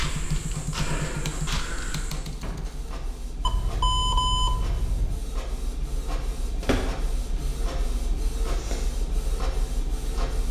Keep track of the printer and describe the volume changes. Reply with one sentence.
The volume of the printer goes up.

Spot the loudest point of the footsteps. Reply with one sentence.
The loudest moment of the footsteps is at 1 second.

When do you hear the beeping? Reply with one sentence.
You can hear the beeping from 3.4 to 5.2 s.